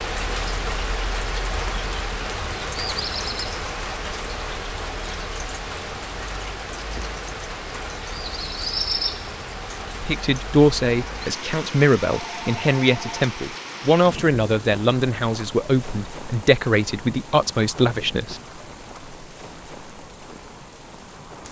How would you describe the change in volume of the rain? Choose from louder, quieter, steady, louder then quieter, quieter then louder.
quieter.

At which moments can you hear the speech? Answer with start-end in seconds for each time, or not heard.
10.0-18.4.